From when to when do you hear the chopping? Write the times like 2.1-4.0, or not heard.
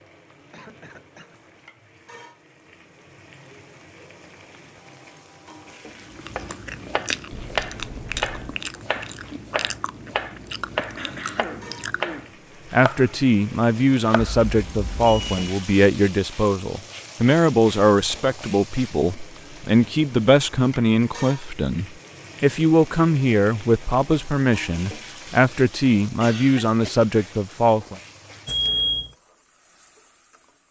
6.3-13.2, 13.9-14.4.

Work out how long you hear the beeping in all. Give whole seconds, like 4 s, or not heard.
3 s.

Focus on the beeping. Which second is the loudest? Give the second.
29 s.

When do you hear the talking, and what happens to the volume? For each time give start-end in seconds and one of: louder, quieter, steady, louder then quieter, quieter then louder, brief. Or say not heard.
12.7-27.9 steady.